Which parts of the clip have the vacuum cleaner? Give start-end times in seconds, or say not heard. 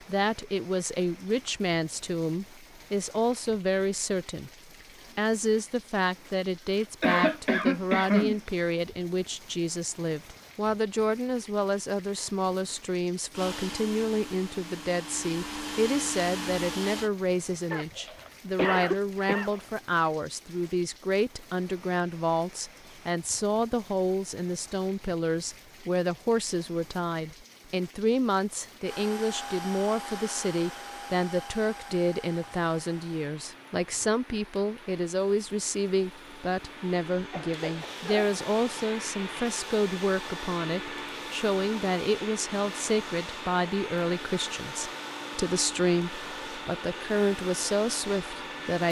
13.3-17.1, 28.8-48.8.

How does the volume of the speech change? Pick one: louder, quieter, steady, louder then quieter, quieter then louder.
steady.